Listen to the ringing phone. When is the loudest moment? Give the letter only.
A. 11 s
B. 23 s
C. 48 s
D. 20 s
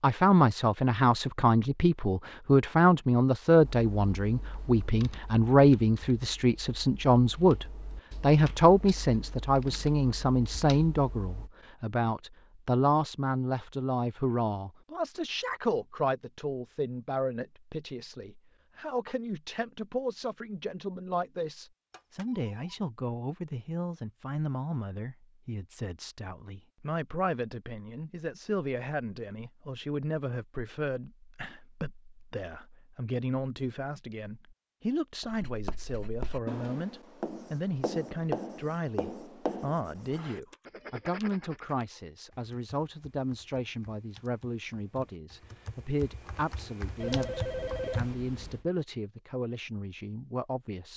C.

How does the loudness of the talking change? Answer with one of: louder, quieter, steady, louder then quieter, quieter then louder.
quieter.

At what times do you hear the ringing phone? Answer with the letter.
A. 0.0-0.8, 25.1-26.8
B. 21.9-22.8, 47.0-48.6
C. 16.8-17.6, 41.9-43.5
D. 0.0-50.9
B.